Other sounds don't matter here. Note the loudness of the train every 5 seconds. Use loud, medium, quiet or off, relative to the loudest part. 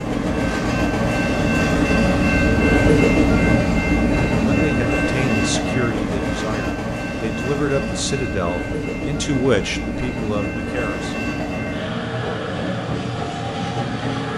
loud, medium, medium.